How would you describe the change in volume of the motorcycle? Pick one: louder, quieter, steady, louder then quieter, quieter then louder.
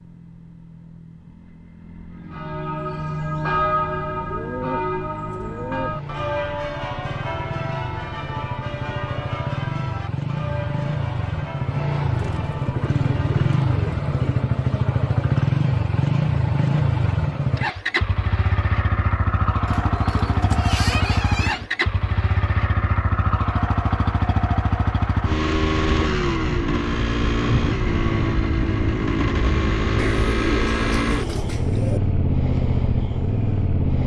louder.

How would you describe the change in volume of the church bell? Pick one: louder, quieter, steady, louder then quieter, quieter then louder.
quieter.